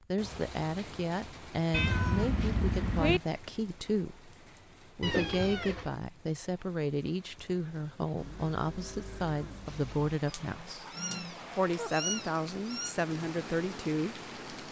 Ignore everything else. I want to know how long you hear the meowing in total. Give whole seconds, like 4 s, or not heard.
5 s.